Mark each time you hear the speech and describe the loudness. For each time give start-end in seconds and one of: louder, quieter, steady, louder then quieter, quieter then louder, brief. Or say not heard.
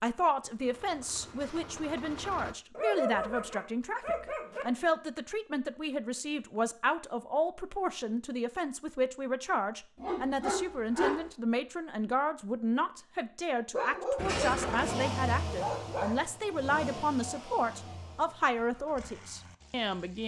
0.0-20.2 steady.